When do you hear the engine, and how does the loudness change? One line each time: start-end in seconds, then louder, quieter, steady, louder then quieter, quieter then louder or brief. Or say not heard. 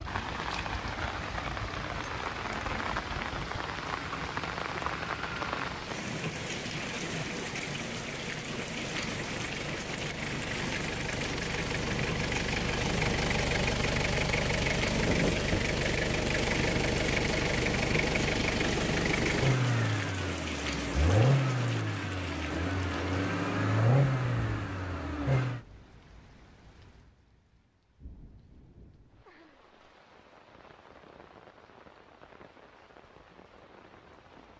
0.0-25.6 louder.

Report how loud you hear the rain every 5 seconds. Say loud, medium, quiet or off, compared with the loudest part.
loud, loud, loud, loud, loud, quiet, quiet.